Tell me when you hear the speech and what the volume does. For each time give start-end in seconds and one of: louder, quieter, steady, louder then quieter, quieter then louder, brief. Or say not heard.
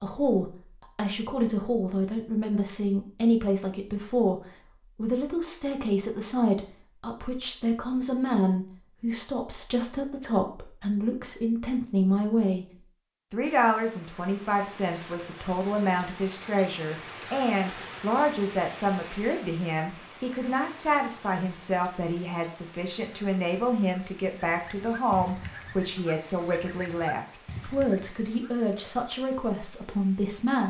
0.0-12.7 steady
13.3-30.6 steady.